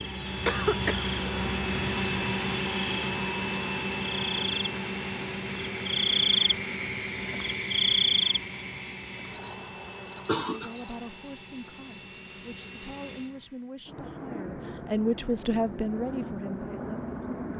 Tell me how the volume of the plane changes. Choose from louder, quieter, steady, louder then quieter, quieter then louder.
quieter then louder.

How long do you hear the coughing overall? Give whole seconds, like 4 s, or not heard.
2 s.